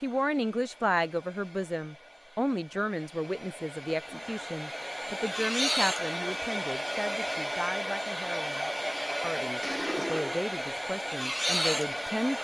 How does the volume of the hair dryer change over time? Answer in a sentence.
The volume of the hair dryer goes up.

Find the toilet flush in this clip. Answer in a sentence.
The toilet flush can be heard from 9.6 to 10.4 s.